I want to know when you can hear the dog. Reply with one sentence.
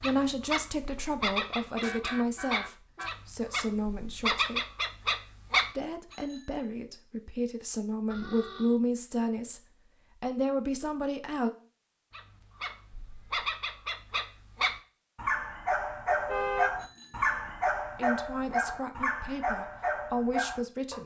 You can hear the dog from 0.0 to 6.2 s and from 12.1 to 21.0 s.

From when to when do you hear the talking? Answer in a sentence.
The talking can be heard from 0.0 to 4.8 s, from 5.7 to 11.5 s and from 17.9 to 21.0 s.